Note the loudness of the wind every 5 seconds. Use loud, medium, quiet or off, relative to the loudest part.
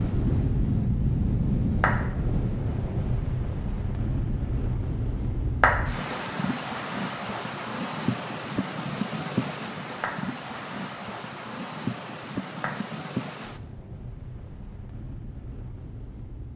loud, loud, medium, quiet.